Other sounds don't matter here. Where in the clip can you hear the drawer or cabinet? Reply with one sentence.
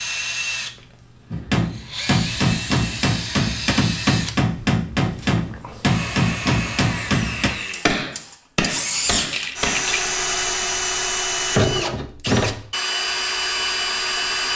The drawer or cabinet can't be heard in this clip.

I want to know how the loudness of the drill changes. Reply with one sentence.
The volume of the drill goes up.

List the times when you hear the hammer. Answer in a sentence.
The hammer can be heard from 1.3 to 9.8 s.